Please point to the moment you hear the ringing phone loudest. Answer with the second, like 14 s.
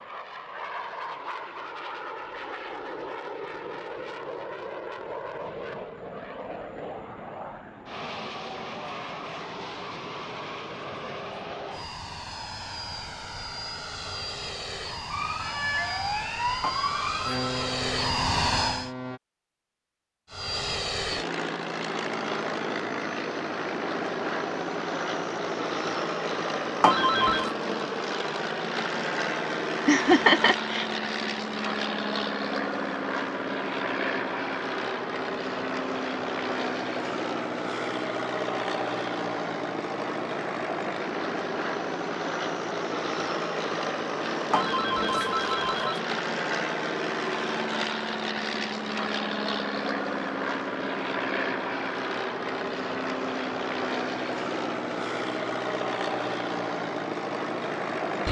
27 s.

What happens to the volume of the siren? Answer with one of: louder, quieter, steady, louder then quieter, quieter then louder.
quieter.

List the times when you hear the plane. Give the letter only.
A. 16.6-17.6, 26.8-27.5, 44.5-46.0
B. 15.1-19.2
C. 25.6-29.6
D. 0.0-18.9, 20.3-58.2
D.